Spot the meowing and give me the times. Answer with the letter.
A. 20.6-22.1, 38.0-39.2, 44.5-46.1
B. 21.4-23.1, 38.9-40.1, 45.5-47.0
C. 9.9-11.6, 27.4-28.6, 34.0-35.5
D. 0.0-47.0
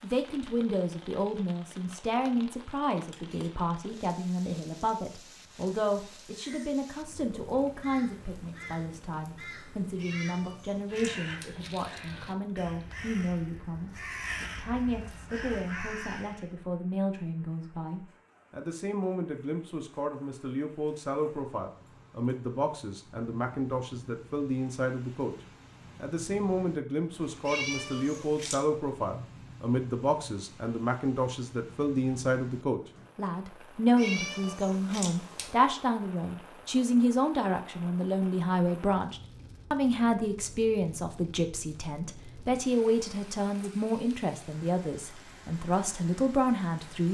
C.